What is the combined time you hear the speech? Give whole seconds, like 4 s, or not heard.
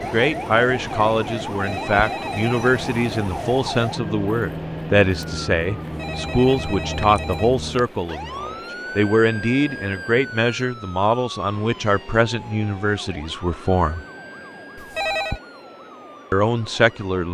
15 s.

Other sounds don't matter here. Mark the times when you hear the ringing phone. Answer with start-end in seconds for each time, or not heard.
1.4-2.8, 5.8-7.9, 14.8-15.4.